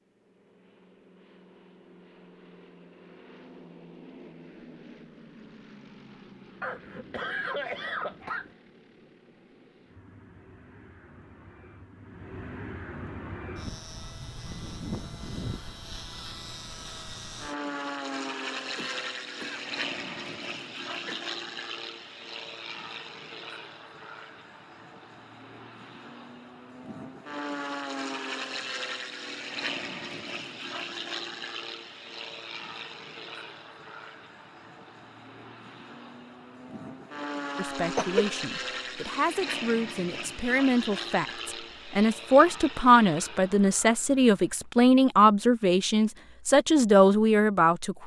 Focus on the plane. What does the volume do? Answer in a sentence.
The volume of the plane goes up.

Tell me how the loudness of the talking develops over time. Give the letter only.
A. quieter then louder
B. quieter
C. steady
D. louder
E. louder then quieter
D.